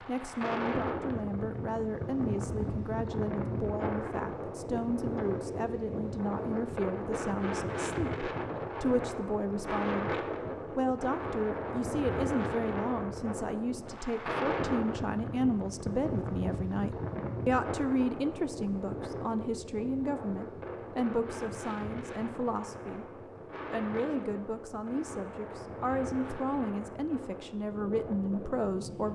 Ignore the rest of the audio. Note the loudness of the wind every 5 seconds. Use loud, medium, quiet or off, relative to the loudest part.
loud, loud, loud, loud, medium, medium.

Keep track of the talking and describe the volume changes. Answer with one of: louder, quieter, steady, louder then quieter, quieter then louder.
steady.